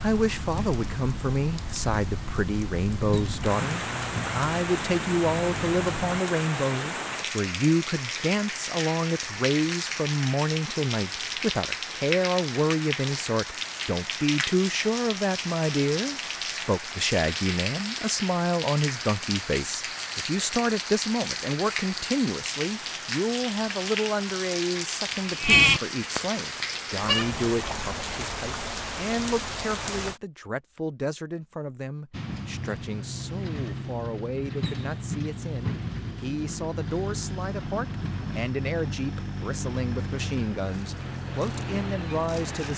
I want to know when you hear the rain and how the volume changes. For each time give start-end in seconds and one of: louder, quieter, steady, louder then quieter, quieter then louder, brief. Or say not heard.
0.0-30.2 steady.